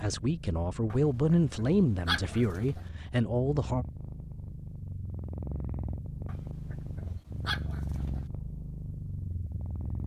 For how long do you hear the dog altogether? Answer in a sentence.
The dog can be heard for 4 seconds in total.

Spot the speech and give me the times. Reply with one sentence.
You can hear the speech from 0.0 to 3.9 s.